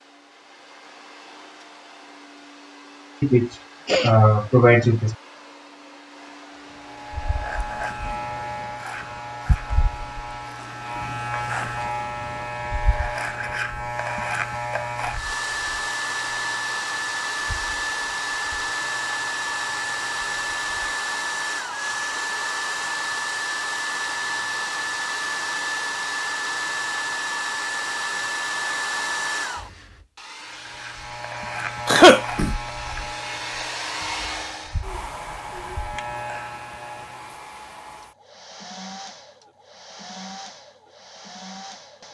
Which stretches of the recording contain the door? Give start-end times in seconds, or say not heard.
not heard.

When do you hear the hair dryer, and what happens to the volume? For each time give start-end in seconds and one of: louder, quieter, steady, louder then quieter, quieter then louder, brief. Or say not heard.
0.0-42.0 louder then quieter.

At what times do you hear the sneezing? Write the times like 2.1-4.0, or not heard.
3.2-5.2, 31.9-32.5.